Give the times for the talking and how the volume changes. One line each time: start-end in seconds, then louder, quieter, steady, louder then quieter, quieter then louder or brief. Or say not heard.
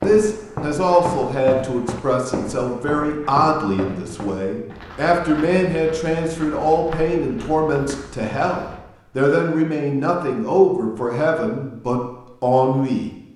0.0-13.3 steady.